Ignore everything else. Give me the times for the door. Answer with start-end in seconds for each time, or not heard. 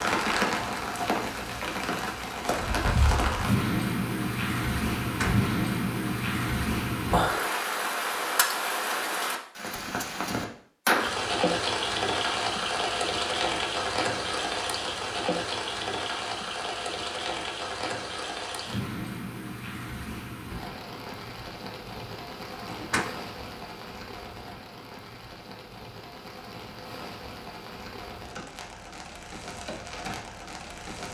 5.0-5.4, 22.6-23.1.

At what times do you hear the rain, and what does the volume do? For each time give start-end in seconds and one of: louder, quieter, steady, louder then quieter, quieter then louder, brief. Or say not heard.
0.0-31.0 quieter.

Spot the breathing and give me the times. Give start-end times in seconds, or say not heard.
not heard.